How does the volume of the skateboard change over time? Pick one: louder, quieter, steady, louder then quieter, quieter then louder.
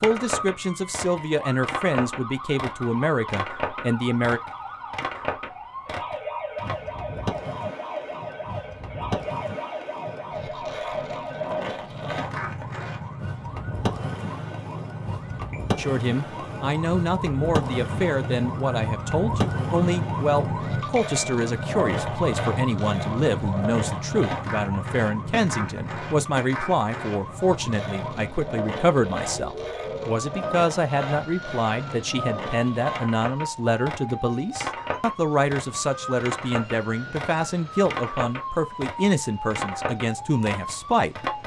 steady.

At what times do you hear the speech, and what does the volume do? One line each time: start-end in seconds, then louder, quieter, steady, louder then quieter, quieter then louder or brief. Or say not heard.
0.0-4.4 steady
15.8-41.1 steady.